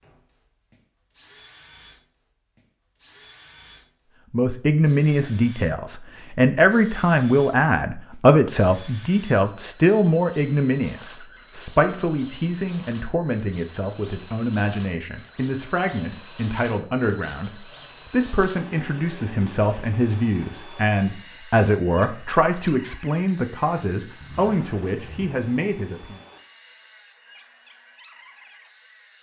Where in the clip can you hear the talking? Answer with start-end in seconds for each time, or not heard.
4.3-26.2.